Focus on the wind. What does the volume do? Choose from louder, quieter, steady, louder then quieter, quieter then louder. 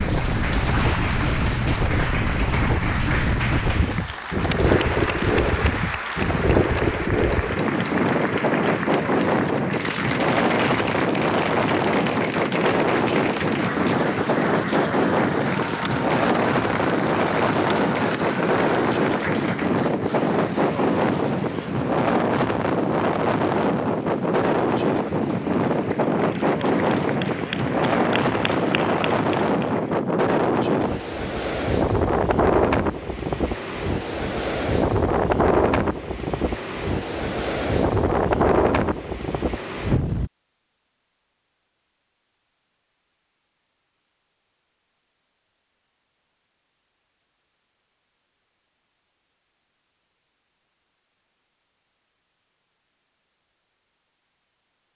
steady.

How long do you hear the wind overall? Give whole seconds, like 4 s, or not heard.
40 s.